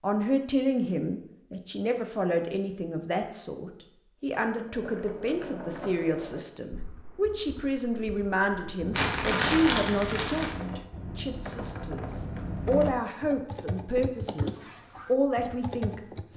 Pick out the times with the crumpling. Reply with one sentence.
The crumpling can be heard from 8.9 to 10.6 s.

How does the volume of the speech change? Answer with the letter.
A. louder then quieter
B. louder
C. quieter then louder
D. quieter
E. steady
E.